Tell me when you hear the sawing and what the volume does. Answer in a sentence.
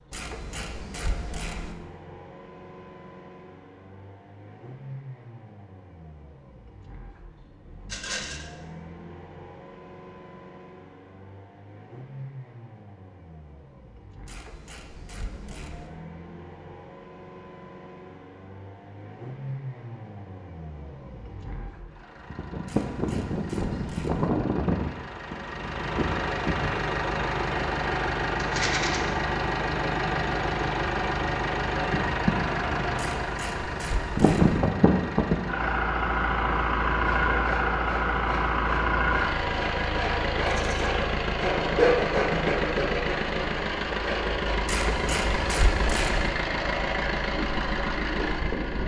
The sawing can be heard from 37.0 to 44.5 s, getting louder then quieter.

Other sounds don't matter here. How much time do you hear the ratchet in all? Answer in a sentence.
You can hear the ratchet for 8 seconds altogether.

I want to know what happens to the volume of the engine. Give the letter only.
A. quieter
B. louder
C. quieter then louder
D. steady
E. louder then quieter
B.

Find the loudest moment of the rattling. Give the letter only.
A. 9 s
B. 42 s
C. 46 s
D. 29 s
D.